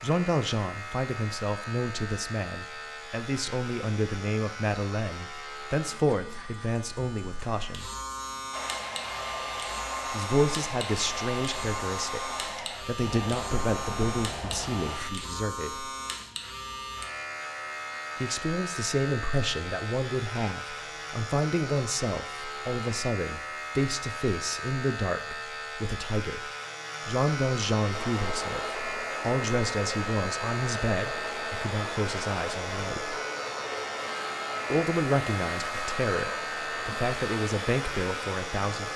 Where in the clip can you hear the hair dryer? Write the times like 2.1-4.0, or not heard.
8.5-15.1, 27.9-38.9.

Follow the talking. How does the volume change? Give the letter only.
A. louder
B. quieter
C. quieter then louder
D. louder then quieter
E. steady
E.